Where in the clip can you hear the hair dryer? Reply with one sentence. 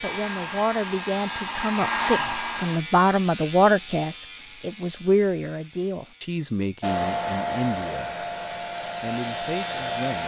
The hair dryer can be heard from 0.0 to 2.8 s and from 6.8 to 10.2 s.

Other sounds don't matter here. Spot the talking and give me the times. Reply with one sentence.
You can hear the talking from 0.0 to 8.2 s and from 9.0 to 10.2 s.